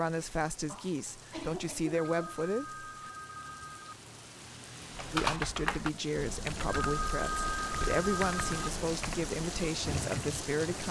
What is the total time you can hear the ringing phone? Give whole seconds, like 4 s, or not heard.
4 s.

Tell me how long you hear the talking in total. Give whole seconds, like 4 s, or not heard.
9 s.